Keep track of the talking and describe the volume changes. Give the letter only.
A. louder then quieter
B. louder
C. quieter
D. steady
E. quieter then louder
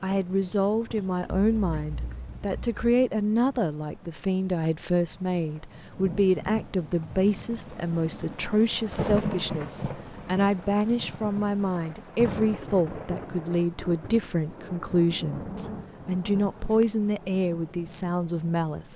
D.